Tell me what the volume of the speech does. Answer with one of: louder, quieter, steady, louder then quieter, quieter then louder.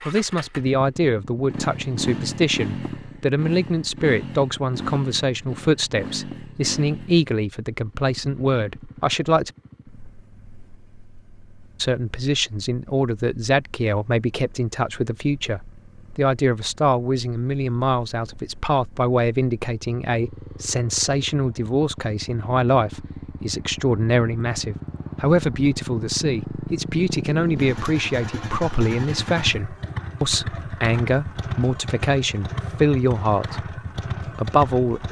steady.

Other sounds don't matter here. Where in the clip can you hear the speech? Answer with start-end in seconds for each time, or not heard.
0.1-9.5, 11.8-35.0.